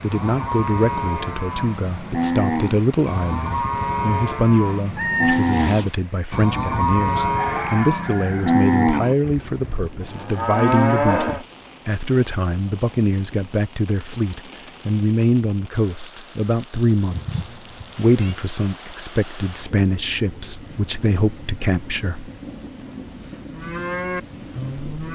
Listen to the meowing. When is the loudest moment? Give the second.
5 s.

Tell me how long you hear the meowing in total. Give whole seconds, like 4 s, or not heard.
2 s.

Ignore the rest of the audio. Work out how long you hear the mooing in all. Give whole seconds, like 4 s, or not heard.
13 s.